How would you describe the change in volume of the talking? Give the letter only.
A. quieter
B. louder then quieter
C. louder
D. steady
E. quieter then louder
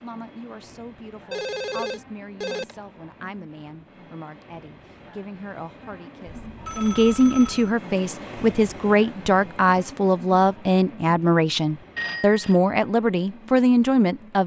C.